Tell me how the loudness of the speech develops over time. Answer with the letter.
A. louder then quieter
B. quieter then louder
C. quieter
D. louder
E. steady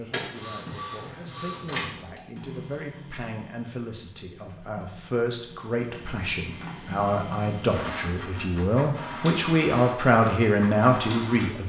D.